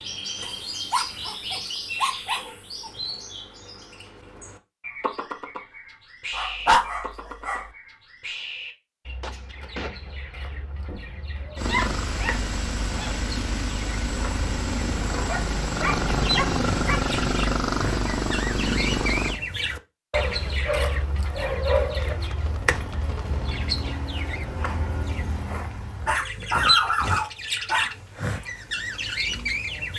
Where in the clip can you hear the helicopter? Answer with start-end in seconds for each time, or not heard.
11.6-19.4.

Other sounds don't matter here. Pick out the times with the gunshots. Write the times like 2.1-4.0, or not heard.
9.2-11.1, 21.9-23.9.